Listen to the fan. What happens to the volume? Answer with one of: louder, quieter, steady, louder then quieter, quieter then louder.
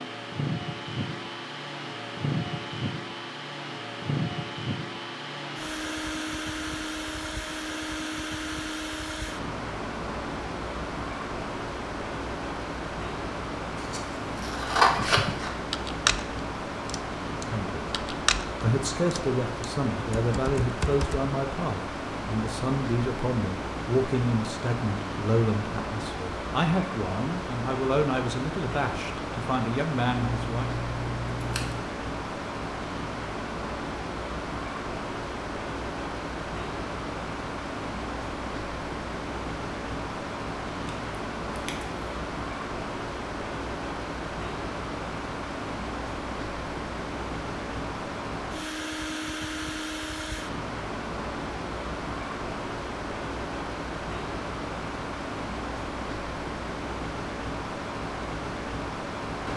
steady.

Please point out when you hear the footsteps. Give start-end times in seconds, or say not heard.
not heard.